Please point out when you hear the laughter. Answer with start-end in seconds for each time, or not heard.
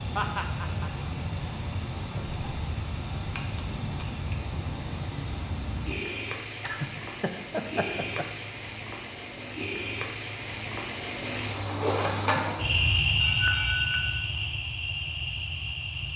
0.1-0.9, 6.6-8.2, 13.2-14.2.